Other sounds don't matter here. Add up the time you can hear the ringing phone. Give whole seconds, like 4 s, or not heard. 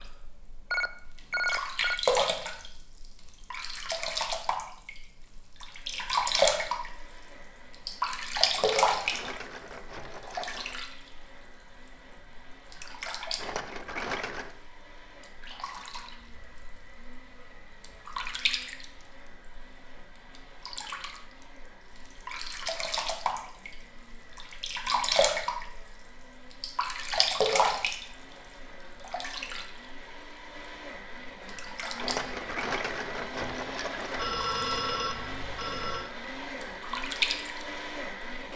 3 s.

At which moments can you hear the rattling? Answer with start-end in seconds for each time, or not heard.
8.6-10.8, 13.3-14.5, 31.9-34.2.